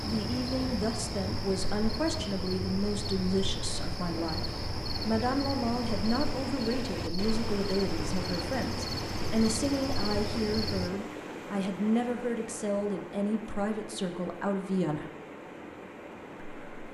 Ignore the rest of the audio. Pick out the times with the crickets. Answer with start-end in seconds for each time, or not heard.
0.0-10.9.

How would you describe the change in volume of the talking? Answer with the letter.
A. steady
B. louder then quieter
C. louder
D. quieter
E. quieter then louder
A.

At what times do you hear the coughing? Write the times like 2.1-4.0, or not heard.
not heard.